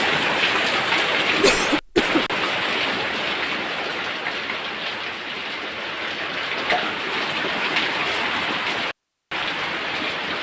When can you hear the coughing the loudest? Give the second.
2 s.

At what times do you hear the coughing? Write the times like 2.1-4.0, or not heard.
1.4-2.2, 6.5-7.0.